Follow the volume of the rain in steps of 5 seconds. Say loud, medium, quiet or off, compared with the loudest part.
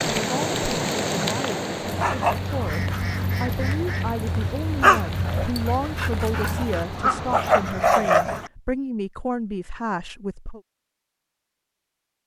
loud, medium, off.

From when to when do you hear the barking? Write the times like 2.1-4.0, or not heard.
1.8-8.5.